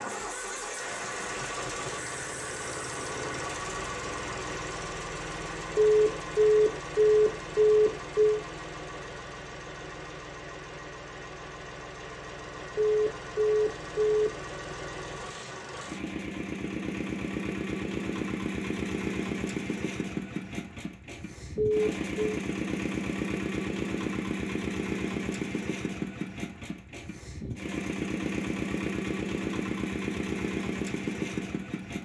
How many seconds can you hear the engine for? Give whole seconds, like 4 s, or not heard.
32 s.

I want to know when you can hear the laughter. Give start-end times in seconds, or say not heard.
not heard.